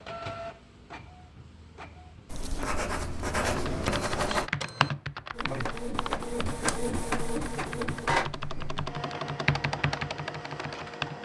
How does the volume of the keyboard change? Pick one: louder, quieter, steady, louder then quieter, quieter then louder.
quieter then louder.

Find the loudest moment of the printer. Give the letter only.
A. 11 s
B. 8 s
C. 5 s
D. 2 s
B.